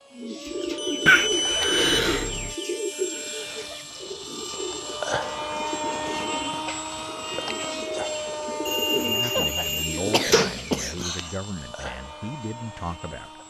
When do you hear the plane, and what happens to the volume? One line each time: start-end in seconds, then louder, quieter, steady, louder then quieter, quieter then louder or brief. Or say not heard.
0.0-13.4 louder then quieter.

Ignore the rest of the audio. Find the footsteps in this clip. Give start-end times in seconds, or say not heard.
not heard.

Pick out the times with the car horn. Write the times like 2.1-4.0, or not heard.
not heard.